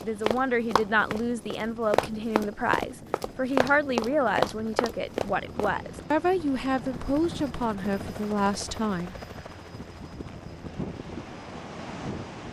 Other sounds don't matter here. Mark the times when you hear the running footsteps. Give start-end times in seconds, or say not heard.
0.0-6.0.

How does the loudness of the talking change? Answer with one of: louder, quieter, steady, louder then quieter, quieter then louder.
steady.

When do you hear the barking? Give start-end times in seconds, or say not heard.
not heard.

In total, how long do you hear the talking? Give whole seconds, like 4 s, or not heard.
9 s.